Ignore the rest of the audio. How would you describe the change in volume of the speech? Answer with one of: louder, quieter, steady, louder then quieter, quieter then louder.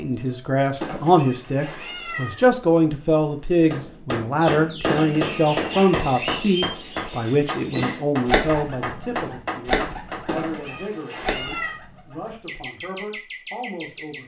quieter.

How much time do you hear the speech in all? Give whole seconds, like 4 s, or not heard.
14 s.